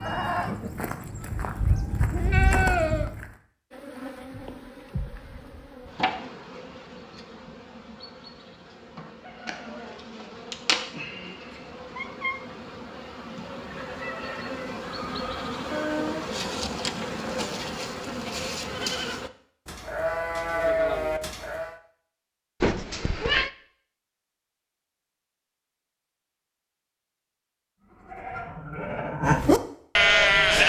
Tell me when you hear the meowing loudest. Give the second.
23 s.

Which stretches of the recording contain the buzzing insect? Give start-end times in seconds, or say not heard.
3.7-19.3.